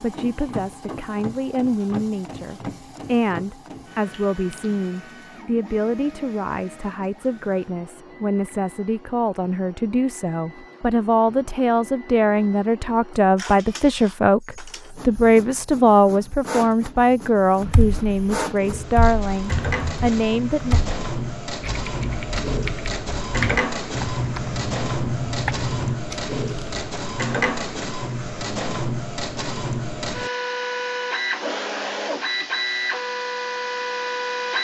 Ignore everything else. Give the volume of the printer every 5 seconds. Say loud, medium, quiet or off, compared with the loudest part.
medium, quiet, quiet, medium, loud, loud, loud.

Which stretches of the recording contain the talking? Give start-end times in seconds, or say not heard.
0.0-20.8.